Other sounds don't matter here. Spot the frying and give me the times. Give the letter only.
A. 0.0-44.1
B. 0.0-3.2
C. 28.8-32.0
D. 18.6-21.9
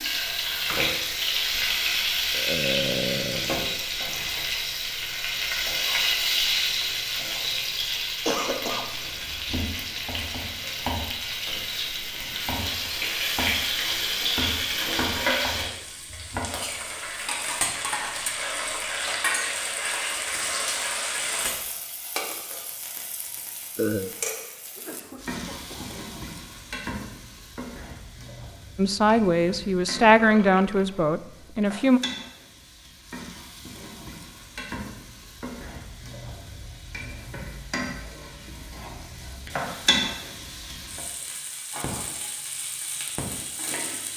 A.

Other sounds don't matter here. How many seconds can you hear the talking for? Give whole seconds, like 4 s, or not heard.
3 s.